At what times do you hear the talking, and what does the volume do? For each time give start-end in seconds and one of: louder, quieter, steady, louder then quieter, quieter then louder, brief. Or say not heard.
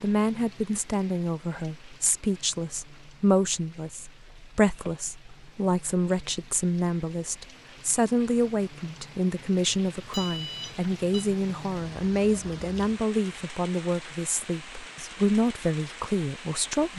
0.0-16.9 steady.